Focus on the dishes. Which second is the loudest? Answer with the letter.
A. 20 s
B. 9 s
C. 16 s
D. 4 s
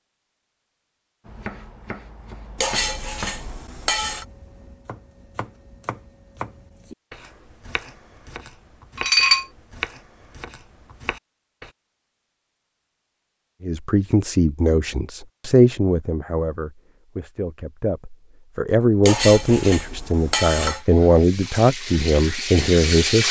B.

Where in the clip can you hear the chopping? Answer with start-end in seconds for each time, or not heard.
1.2-11.7.